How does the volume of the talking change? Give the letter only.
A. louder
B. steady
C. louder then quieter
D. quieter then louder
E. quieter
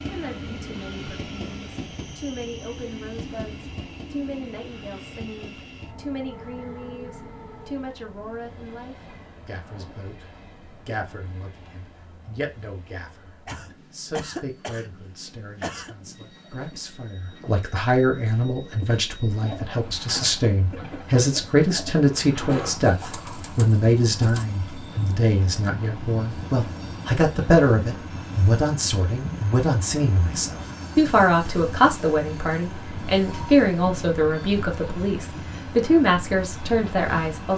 A.